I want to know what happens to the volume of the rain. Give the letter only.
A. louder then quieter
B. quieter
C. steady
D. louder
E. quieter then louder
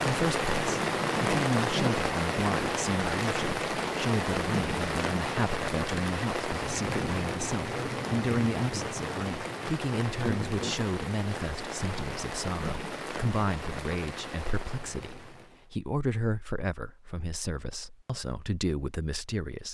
B.